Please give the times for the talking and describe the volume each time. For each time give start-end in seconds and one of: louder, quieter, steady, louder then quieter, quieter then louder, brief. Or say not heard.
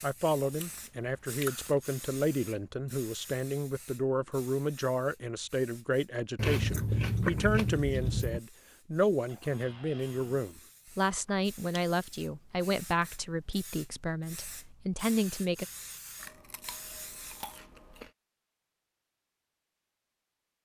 0.0-15.7 steady.